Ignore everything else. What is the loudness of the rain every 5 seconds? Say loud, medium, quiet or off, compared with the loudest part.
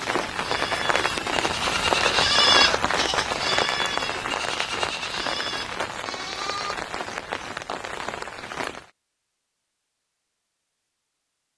loud, medium, off.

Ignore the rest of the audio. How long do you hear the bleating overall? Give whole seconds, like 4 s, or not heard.
7 s.